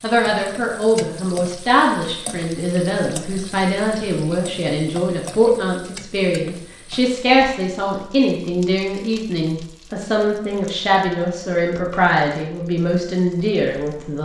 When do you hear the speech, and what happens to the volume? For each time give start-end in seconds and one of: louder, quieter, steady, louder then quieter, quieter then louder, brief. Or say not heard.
0.0-14.1 steady.